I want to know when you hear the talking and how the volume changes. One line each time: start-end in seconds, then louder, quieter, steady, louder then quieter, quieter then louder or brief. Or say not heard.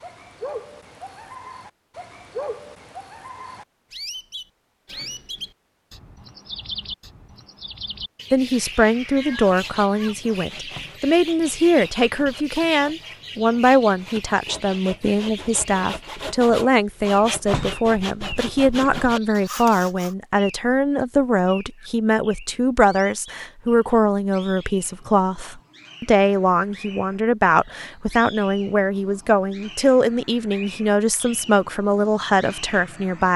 8.3-33.3 steady.